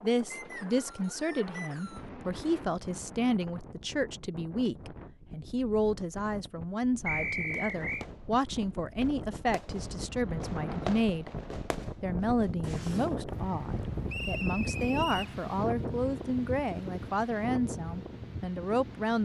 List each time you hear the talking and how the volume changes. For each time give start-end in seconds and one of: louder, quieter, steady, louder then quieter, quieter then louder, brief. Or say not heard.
0.0-11.3 steady
12.0-19.2 steady.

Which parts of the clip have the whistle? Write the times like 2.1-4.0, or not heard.
0.3-2.0, 7.0-8.1, 14.1-15.3.